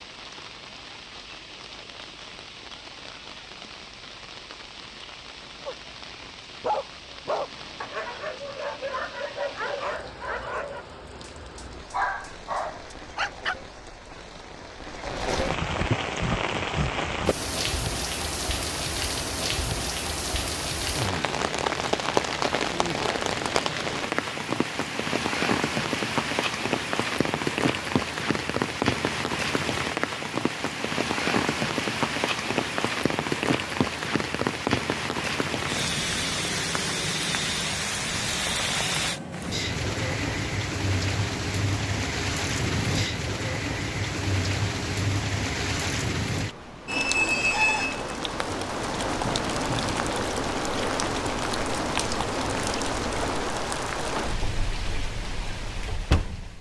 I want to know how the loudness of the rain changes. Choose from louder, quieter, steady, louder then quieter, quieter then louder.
louder.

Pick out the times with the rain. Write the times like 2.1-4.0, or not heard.
0.0-56.5.